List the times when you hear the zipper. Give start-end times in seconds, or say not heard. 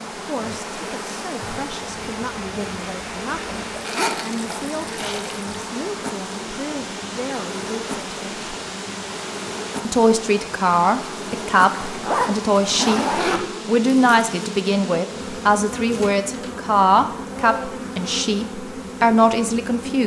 3.9-5.4, 11.7-13.4.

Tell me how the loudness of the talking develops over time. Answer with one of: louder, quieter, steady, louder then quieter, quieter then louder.
louder.